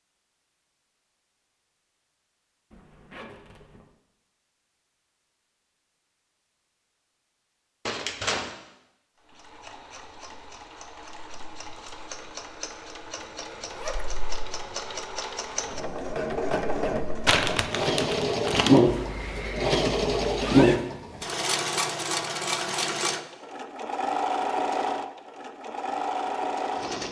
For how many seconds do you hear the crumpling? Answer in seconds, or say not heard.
2 s.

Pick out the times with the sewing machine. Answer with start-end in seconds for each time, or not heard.
9.3-27.0.